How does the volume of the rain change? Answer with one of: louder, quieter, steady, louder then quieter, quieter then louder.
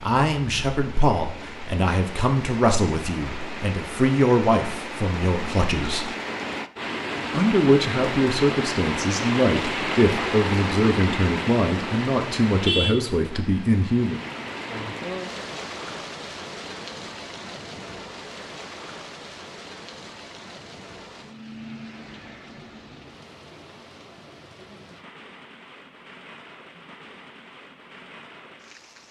louder then quieter.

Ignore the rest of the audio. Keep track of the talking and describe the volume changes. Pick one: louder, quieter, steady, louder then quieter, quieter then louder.
steady.